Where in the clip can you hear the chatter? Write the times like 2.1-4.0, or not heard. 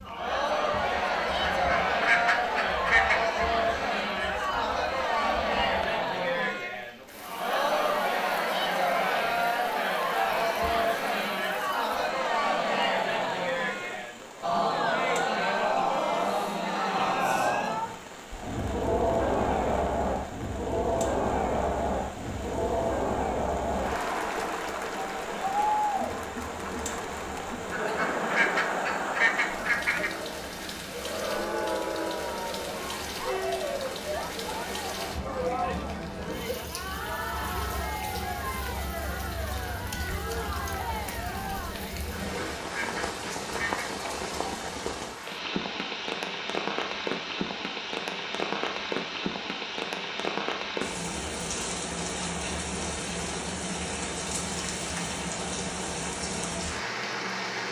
0.0-42.1.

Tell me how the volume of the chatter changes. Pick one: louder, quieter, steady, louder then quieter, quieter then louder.
quieter.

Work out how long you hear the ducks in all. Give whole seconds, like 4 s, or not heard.
6 s.